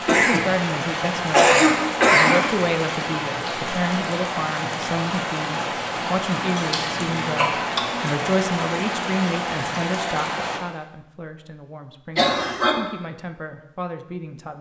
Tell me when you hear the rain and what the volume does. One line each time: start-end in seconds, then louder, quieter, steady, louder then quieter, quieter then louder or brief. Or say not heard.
0.0-10.6 steady.